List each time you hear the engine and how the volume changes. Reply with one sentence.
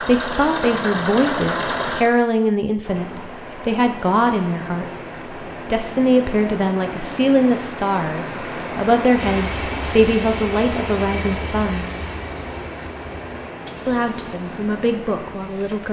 You can hear the engine briefly from 0.0 to 2.1 s; and from 9.1 to 15.8 s, getting quieter.